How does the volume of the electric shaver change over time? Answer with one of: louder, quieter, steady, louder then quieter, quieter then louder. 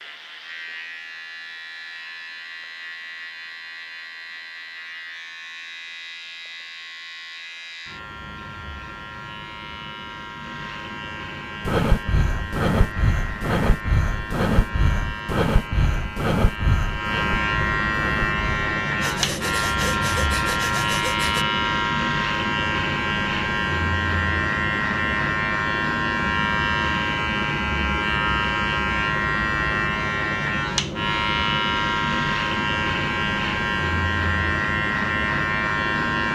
louder.